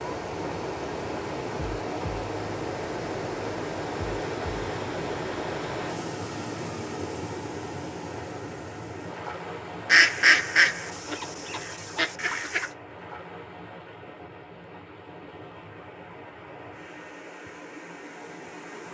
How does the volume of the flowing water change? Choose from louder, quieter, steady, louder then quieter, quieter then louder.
quieter.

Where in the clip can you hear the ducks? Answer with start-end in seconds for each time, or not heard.
9.8-12.7.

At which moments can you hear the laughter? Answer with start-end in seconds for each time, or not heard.
not heard.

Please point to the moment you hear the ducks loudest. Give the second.
10 s.